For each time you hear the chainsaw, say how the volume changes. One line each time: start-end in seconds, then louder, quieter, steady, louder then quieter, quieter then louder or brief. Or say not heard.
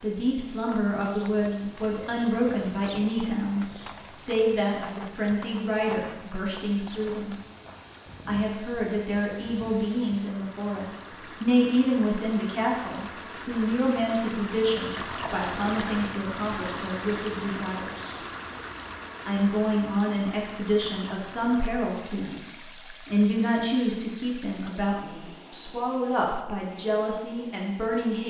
not heard.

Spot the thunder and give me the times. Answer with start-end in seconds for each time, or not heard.
not heard.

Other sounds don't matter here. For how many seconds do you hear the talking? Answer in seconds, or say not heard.
26 s.